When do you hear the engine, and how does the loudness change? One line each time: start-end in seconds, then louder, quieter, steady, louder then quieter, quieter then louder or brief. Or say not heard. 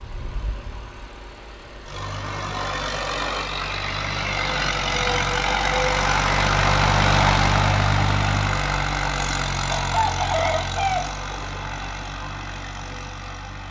0.0-13.6 louder then quieter.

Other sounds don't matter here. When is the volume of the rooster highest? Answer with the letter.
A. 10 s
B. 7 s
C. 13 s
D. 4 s
A.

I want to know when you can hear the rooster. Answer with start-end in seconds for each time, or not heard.
9.7-11.6.